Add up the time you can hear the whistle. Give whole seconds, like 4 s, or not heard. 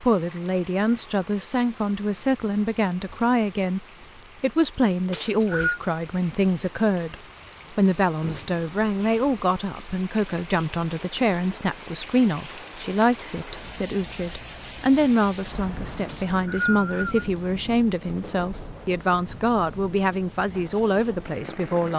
2 s.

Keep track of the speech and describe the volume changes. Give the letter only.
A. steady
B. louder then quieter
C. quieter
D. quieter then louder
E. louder
A.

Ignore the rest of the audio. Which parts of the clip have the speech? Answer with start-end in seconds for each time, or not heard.
0.0-21.9.